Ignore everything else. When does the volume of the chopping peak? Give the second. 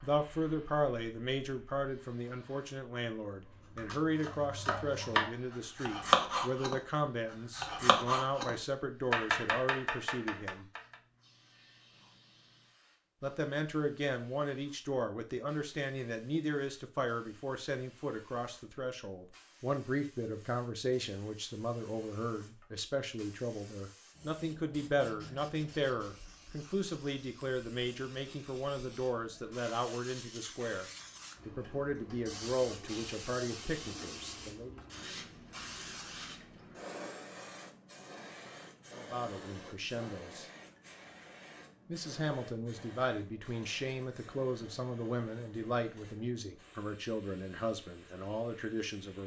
6 s.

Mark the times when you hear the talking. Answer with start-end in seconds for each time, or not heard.
0.0-10.7, 13.2-30.9, 31.4-34.8, 38.9-40.5, 41.9-49.2.